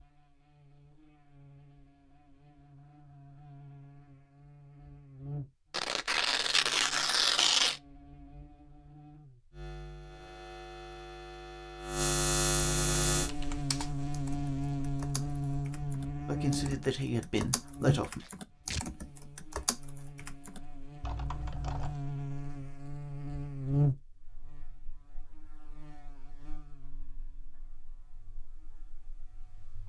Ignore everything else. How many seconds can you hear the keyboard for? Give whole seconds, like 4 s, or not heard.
9 s.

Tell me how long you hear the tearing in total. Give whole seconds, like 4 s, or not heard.
3 s.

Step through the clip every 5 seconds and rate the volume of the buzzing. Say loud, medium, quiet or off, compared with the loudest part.
quiet, quiet, loud, loud, loud, quiet.